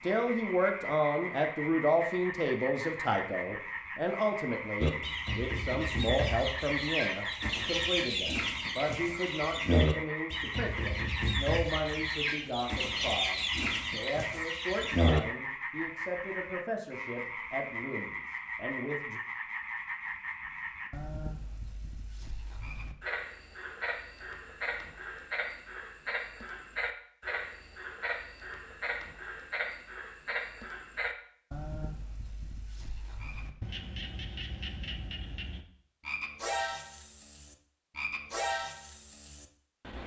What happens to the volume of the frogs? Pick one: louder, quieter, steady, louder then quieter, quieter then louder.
steady.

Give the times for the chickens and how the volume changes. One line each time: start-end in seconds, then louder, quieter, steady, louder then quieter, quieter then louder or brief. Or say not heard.
4.8-15.2 steady.